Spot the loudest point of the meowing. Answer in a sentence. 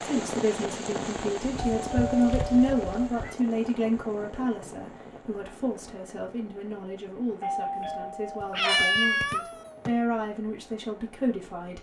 The loudest moment of the meowing is at 9 seconds.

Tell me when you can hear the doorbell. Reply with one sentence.
You can hear the doorbell from 1.8 to 3.1 s and from 7.4 to 8.6 s.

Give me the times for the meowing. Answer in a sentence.
The meowing can be heard from 1.5 to 3.4 s and from 8.4 to 9.9 s.